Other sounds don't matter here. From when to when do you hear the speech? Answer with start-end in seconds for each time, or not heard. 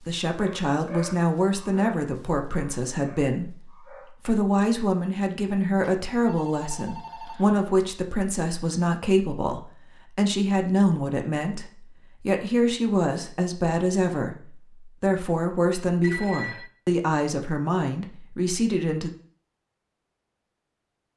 0.0-19.1.